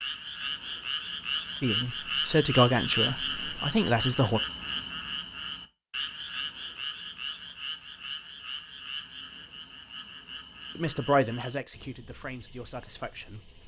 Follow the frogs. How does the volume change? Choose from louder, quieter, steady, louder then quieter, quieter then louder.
quieter.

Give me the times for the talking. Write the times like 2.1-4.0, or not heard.
1.6-4.4, 10.8-13.4.